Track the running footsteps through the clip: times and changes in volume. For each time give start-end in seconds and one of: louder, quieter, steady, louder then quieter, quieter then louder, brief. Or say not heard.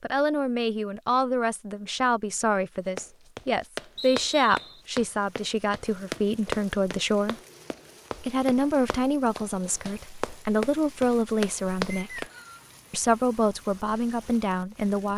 3.0-12.3 quieter then louder.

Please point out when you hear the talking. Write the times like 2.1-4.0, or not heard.
0.0-7.3, 8.2-12.2, 12.9-15.1.